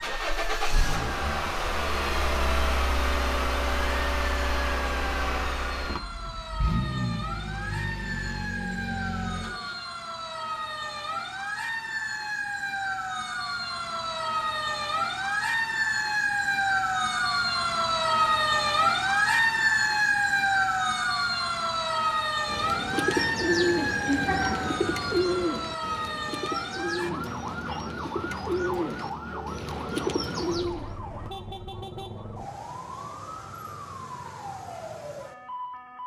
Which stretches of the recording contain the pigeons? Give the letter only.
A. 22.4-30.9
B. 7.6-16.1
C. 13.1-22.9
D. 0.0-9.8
A.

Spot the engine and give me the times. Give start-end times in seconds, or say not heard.
0.0-9.8.